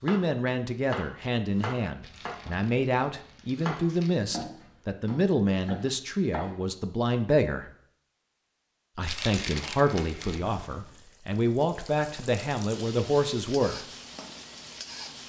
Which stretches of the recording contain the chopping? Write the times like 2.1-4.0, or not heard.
0.0-6.5.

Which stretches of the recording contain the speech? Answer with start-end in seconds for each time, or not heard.
0.0-7.7, 8.9-13.8.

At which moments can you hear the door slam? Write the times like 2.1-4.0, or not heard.
not heard.